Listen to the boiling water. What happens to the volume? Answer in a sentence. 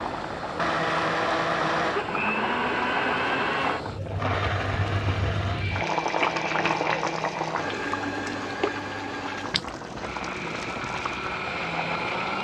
The volume of the boiling water goes up, then down.